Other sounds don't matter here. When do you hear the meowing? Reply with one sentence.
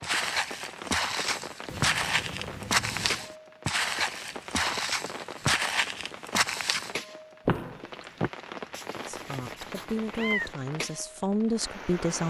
You can hear the meowing from 1.6 to 3.3 s and from 8.7 to 10.6 s.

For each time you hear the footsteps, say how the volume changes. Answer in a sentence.
The footsteps can be heard from 0.0 to 8.3 s, at a steady volume.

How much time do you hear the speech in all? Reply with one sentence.
The speech can be heard for 3 seconds in total.